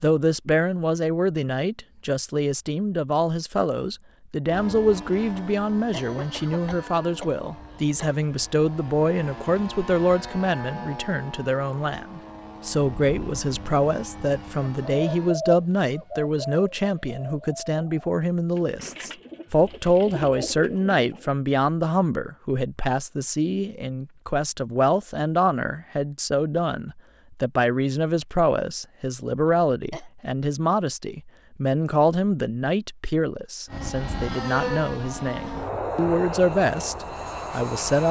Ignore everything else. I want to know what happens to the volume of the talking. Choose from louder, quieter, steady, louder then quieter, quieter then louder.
steady.